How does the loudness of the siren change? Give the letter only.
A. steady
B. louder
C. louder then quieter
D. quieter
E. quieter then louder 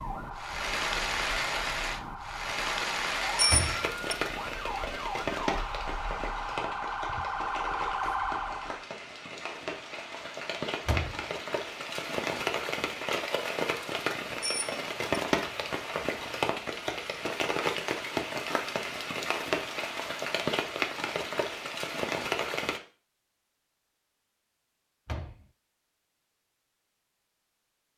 B.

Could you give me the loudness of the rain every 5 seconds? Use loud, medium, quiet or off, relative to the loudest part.
loud, medium, loud, loud, loud, off.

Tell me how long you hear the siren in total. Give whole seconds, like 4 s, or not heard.
9 s.